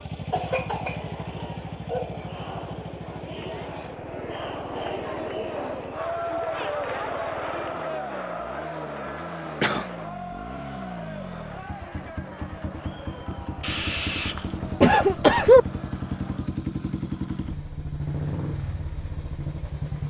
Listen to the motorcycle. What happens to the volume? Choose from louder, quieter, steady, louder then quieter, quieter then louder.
quieter then louder.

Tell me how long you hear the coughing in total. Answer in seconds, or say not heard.
5 s.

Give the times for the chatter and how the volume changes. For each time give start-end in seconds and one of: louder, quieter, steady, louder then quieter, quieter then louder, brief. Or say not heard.
0.0-16.6 louder then quieter.